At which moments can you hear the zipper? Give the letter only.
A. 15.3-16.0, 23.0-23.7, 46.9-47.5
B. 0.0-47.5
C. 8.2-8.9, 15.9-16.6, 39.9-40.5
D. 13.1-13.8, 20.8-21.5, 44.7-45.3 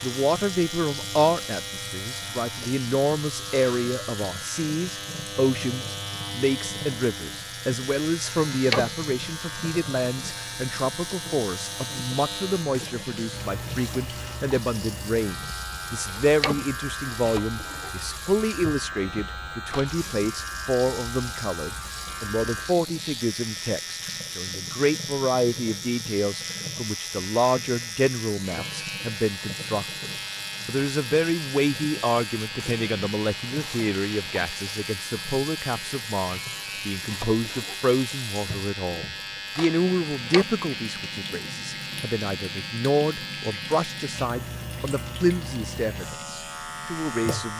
C.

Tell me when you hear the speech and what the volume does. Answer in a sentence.
You can hear the speech from 0.0 to 47.5 s, at a steady volume.